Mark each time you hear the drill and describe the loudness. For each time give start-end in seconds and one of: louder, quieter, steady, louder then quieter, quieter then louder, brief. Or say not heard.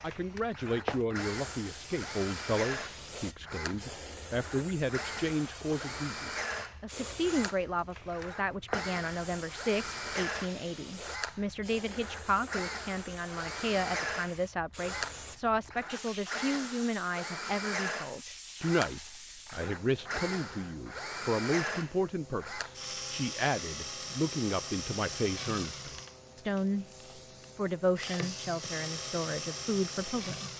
0.0-30.5 steady.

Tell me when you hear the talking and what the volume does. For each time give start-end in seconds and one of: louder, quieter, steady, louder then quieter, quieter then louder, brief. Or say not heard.
0.0-26.9 steady
27.6-30.5 brief.